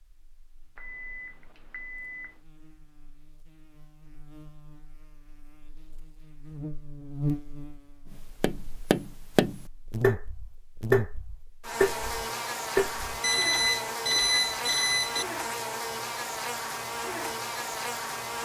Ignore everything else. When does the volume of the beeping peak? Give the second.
14 s.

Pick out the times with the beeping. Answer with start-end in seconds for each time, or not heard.
0.8-2.4, 13.2-15.2.